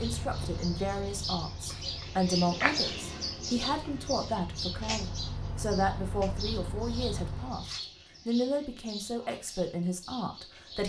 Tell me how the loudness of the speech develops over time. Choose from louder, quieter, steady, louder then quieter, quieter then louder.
steady.